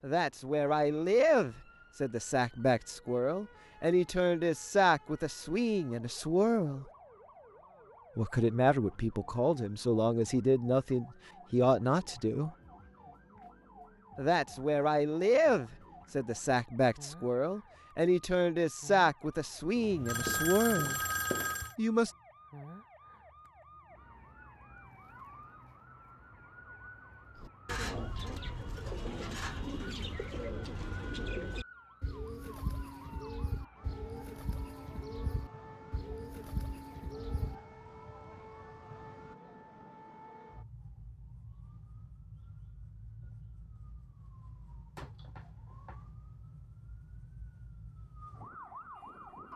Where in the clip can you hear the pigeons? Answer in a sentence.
You can hear the pigeons from 27.4 to 37.5 s.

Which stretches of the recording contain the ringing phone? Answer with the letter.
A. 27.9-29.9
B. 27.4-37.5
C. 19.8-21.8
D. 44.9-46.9
C.